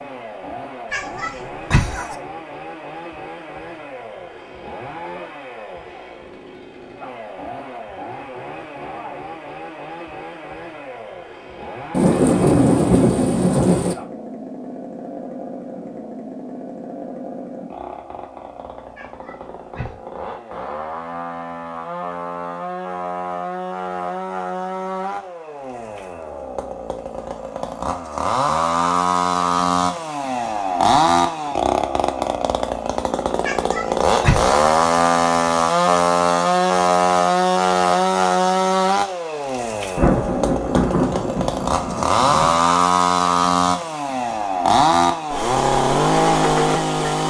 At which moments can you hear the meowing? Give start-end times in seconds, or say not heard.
0.9-2.1, 18.9-20.0, 33.5-34.6.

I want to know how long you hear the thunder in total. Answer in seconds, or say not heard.
5 s.